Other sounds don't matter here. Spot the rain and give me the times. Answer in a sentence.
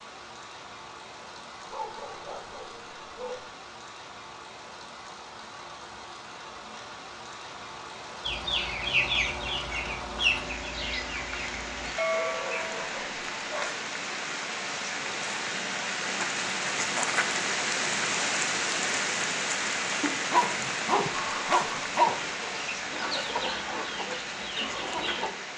The rain can be heard from 0.0 to 25.5 s.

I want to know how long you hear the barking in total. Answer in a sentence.
You can hear the barking for 5 seconds altogether.